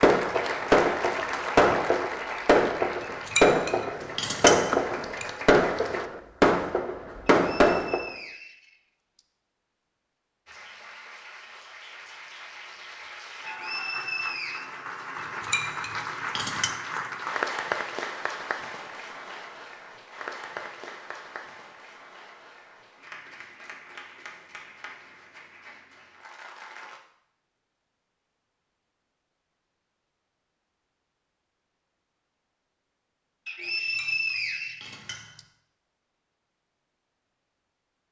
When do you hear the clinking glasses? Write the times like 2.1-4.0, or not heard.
3.0-5.3, 15.2-16.8, 33.6-35.4.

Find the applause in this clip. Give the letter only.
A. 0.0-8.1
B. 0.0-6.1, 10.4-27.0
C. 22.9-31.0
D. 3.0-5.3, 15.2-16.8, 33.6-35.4
B.